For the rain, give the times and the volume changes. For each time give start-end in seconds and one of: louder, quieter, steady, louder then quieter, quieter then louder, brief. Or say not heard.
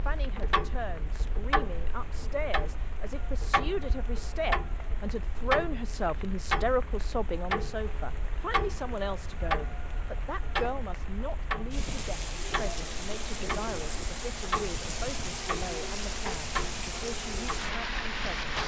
0.0-18.6 louder.